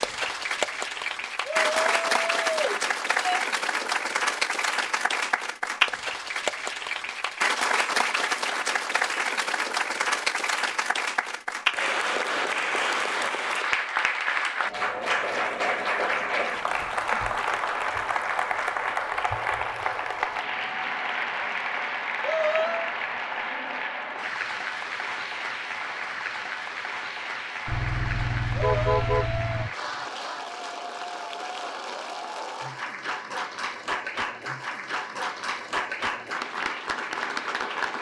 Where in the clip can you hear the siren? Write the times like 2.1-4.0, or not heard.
not heard.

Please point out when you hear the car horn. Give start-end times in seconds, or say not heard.
27.6-29.7.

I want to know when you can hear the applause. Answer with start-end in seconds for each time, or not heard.
0.0-37.9.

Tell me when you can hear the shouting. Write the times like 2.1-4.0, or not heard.
1.4-3.4, 22.2-22.9, 28.6-29.6.